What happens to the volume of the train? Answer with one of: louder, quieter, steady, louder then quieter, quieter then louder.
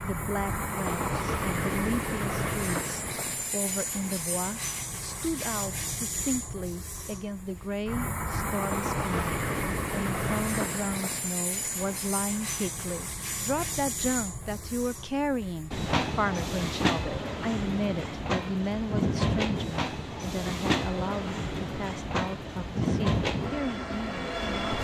steady.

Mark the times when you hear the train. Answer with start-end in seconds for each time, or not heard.
0.0-24.7.